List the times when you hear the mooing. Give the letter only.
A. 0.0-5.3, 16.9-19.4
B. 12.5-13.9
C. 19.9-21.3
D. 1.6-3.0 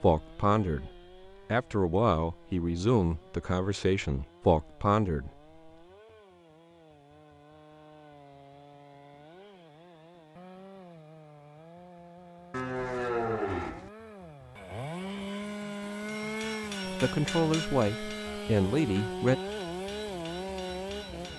B.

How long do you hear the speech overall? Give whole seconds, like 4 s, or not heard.
8 s.